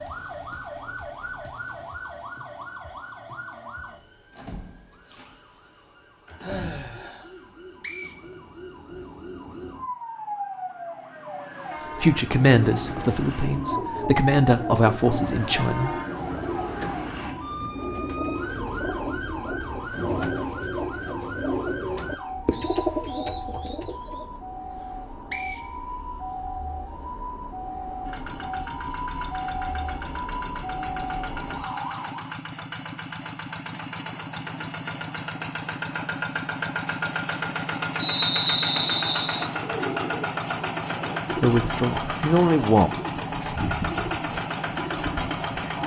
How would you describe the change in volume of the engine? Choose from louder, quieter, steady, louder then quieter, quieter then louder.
louder.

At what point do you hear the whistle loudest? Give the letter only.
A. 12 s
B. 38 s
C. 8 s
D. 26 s
B.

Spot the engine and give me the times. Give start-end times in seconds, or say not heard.
28.1-45.8.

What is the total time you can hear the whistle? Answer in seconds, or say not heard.
4 s.